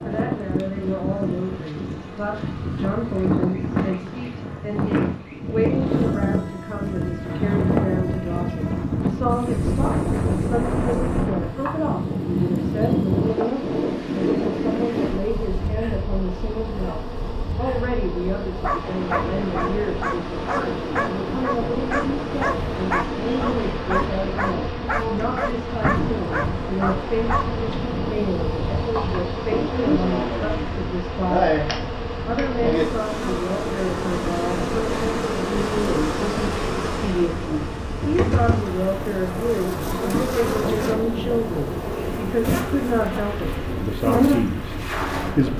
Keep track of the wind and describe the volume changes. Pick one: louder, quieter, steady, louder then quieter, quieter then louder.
quieter.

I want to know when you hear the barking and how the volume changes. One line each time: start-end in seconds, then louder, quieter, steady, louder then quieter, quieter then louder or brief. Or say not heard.
18.6-27.4 steady.